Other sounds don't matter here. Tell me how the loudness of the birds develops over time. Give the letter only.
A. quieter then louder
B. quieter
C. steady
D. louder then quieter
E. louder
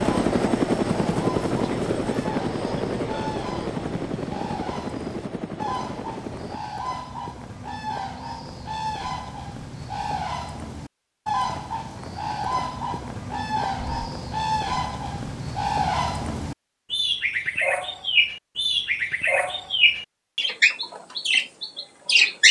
E.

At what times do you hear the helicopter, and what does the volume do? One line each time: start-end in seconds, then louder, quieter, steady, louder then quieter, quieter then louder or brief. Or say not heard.
0.0-6.6 quieter.